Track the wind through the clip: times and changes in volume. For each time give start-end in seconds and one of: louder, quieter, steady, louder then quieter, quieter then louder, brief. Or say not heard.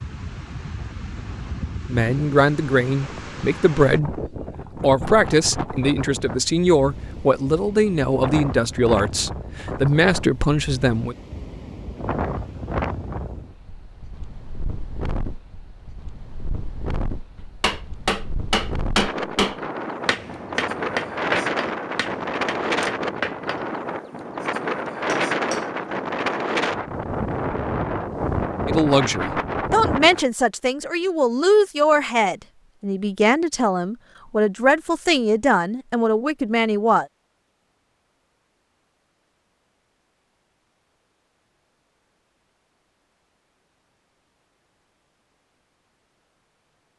0.0-30.2 louder.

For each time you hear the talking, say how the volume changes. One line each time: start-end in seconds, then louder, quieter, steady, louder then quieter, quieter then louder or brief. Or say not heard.
1.9-11.2 steady
28.6-37.0 steady.